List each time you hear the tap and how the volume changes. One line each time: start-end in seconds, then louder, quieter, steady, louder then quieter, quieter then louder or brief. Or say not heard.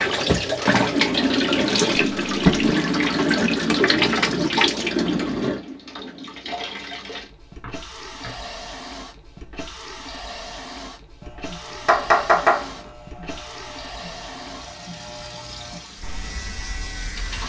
0.0-17.4 quieter.